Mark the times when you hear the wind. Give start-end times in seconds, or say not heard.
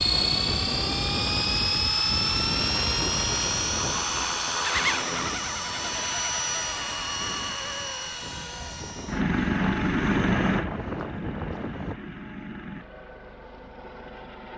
0.0-11.9.